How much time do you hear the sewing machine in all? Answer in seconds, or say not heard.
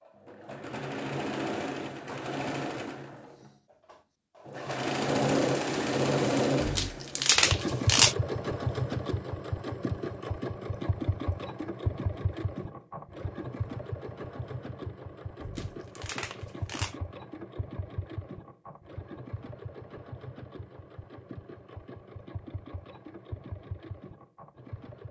25 s.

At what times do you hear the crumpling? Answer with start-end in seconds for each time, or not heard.
6.6-8.2, 15.4-16.9.